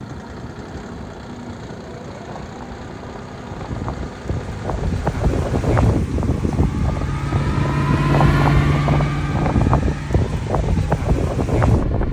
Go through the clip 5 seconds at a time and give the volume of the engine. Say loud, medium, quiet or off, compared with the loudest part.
quiet, loud, medium.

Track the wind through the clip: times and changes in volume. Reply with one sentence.
You can hear the wind from 0.0 to 12.0 s, getting louder.